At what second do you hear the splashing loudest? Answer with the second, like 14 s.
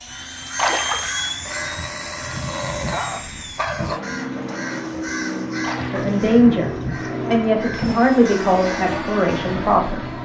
1 s.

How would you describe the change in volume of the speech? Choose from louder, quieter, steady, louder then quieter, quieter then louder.
quieter.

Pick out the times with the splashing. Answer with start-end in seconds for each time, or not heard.
0.6-1.2, 5.6-6.2.